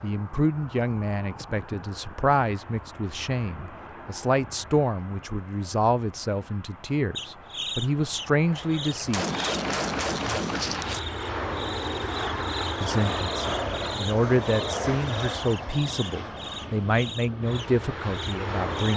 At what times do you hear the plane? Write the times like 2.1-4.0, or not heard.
0.0-18.9.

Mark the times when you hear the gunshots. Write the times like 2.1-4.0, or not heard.
9.1-11.0.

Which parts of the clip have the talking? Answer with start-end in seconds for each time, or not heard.
0.0-9.2, 12.8-18.9.